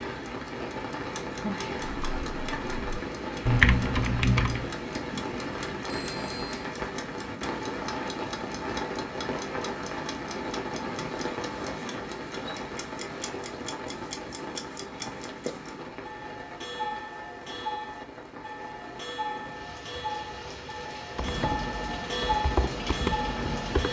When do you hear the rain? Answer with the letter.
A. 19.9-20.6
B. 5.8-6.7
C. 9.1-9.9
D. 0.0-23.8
D.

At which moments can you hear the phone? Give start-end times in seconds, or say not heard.
5.8-6.7.